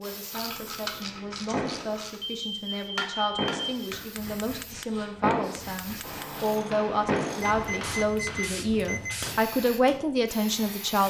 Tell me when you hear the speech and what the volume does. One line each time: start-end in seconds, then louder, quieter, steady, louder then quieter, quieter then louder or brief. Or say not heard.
0.0-11.0 louder.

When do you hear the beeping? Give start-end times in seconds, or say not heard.
2.2-4.0, 7.4-9.2.